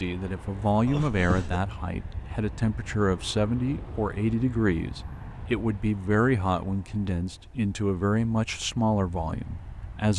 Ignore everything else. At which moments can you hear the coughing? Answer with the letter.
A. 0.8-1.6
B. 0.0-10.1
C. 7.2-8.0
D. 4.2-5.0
A.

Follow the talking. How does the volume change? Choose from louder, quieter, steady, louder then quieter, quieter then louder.
steady.